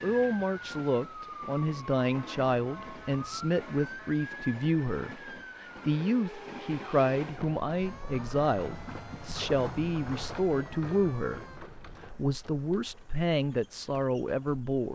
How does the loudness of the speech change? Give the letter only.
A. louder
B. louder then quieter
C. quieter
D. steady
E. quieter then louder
D.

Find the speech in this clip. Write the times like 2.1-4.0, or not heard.
0.0-14.9.